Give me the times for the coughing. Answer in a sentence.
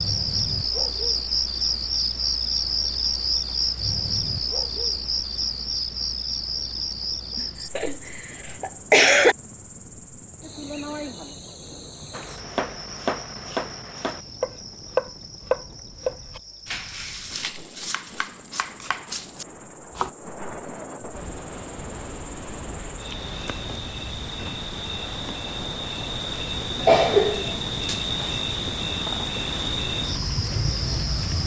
You can hear the coughing from 7.3 to 9.3 s and from 26.8 to 27.6 s.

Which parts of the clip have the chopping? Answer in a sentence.
The chopping can be heard from 12.1 to 20.1 s.